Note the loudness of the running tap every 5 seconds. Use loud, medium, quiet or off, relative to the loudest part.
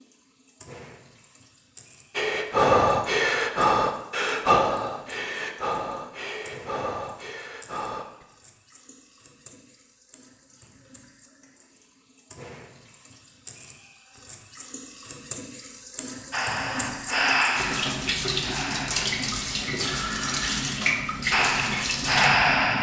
quiet, quiet, quiet, loud, loud.